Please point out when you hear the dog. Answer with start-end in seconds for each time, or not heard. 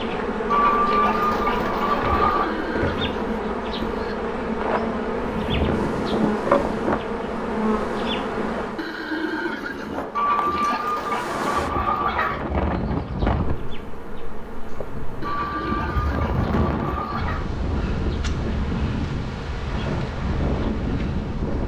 not heard.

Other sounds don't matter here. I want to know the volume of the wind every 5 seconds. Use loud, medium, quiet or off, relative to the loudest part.
off, loud, loud, loud, loud.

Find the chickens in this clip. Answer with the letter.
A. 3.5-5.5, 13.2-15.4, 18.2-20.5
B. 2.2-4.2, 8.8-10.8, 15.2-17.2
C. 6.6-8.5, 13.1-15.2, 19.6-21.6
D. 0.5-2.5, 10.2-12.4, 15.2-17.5
D.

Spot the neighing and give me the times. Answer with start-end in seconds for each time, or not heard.
2.2-4.2, 8.8-10.8, 15.2-17.2.